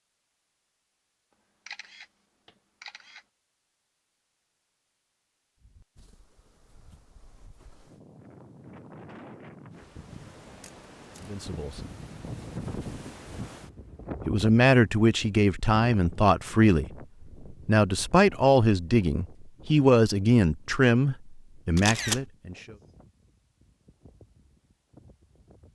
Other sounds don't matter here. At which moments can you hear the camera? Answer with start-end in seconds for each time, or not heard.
1.6-3.2, 10.6-11.3, 21.8-22.2.